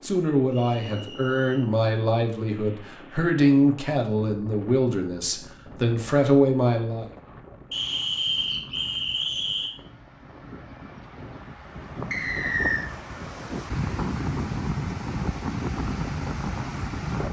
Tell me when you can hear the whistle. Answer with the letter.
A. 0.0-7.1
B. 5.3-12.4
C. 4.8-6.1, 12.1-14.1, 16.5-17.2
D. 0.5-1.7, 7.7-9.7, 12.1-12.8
D.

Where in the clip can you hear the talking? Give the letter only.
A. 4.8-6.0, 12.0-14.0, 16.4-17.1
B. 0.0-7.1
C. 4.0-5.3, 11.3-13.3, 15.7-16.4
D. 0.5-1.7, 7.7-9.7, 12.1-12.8
B.